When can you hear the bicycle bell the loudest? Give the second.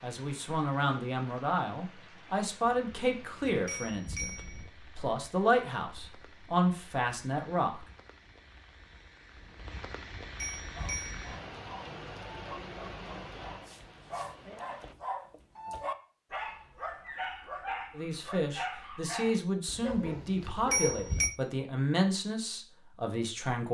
21 s.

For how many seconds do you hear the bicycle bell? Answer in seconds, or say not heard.
6 s.